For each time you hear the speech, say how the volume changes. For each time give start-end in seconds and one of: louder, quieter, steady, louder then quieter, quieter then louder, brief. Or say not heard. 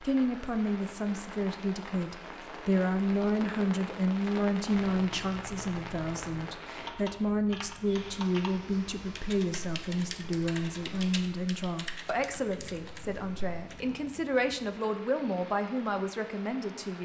0.0-16.9 steady.